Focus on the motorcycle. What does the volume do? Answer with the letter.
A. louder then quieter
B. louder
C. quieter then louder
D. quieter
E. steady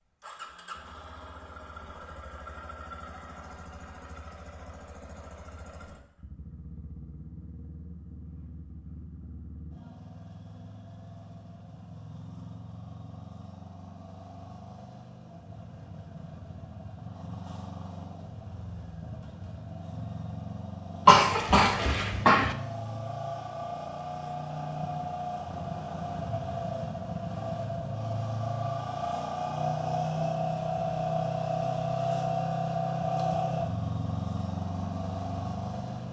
B.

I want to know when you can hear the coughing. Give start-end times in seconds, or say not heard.
21.1-22.6.